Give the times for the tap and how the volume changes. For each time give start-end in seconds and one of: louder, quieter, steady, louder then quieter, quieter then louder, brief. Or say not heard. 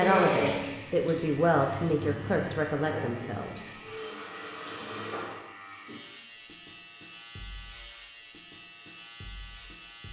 0.0-5.3 quieter then louder.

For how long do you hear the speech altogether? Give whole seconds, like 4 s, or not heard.
4 s.